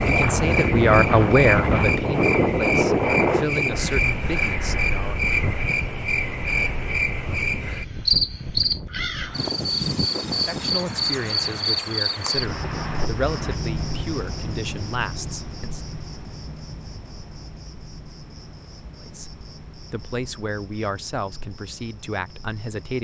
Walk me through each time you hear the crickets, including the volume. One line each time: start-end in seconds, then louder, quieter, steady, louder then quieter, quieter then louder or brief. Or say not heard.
0.0-22.9 quieter.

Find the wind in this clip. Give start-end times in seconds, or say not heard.
0.0-13.6.